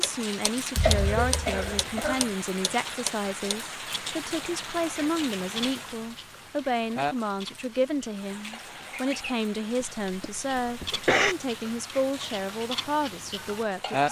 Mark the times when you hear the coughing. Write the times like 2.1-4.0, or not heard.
0.8-2.2, 9.8-11.3.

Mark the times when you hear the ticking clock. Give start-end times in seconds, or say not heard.
0.0-14.0.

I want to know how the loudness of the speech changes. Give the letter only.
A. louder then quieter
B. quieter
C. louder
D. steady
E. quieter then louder
D.